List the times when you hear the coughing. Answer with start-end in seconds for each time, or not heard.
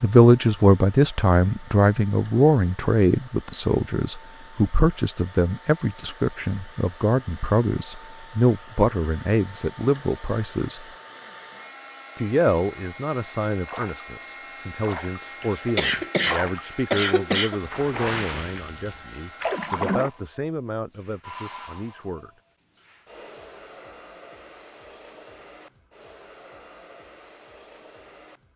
15.4-17.6.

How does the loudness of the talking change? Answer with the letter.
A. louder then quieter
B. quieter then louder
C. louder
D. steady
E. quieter
E.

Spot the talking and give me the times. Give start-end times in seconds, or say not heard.
0.0-10.8, 12.2-22.3.